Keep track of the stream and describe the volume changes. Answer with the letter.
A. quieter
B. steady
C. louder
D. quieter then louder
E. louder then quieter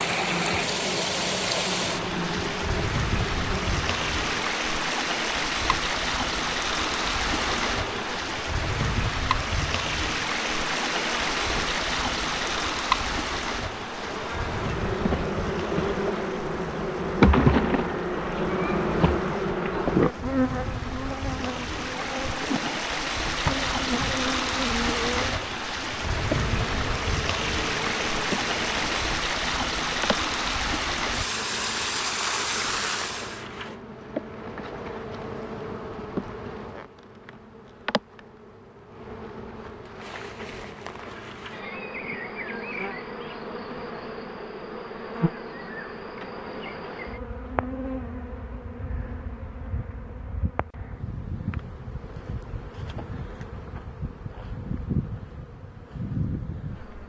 D.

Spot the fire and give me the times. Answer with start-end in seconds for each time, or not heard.
not heard.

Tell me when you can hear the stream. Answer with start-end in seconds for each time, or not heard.
0.0-33.5.